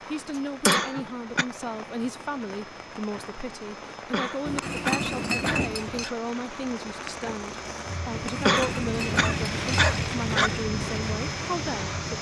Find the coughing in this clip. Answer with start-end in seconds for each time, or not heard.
0.7-1.4, 4.1-6.2, 8.4-10.5.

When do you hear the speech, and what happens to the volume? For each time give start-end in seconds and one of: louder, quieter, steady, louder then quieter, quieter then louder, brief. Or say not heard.
0.1-12.1 steady.